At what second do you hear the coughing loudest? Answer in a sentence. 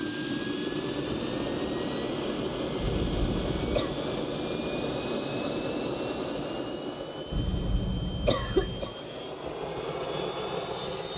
The volume of the coughing peaks at 8 seconds.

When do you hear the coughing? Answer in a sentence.
The coughing can be heard from 2.8 to 4.0 s and from 7.3 to 8.9 s.